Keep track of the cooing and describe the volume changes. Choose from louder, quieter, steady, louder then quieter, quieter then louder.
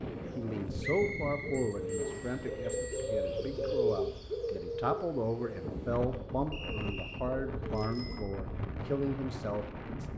louder then quieter.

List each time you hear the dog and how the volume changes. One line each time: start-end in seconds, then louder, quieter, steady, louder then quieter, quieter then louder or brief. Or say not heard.
not heard.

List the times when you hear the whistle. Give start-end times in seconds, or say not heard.
0.8-2.4, 6.5-7.3.